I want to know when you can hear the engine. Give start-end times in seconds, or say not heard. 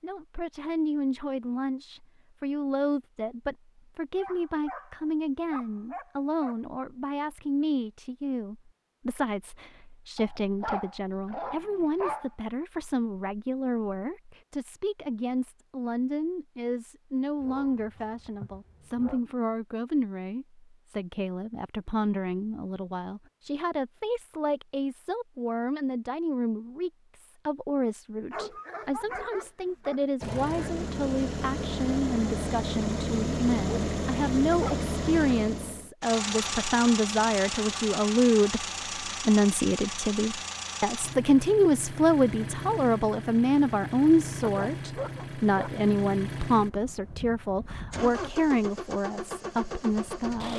30.2-50.5.